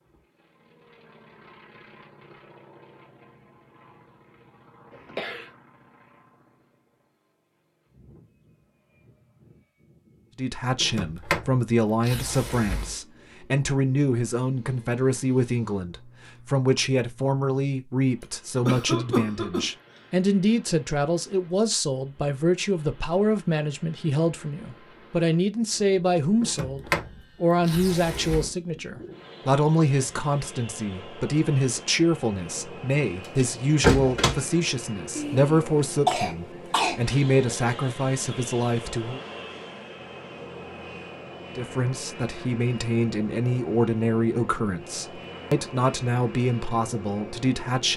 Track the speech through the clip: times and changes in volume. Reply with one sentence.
You can hear the speech from 10.3 to 39.2 s, at a steady volume; and from 41.5 to 47.9 s, at a steady volume.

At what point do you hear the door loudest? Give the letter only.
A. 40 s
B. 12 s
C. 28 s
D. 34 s
D.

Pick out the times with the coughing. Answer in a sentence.
You can hear the coughing from 4.9 to 5.5 s, from 18.2 to 20.0 s and from 35.1 to 37.0 s.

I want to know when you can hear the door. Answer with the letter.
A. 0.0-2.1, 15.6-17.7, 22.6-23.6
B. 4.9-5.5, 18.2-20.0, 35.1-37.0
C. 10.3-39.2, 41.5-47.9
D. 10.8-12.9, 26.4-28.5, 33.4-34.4
D.